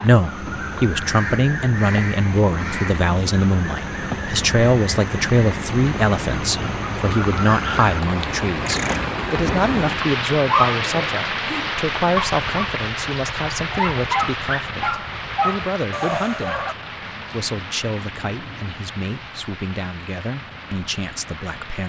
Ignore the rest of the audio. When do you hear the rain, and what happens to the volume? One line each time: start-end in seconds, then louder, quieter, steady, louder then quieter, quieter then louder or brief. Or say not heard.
0.0-21.8 louder then quieter.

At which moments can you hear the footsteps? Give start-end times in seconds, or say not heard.
not heard.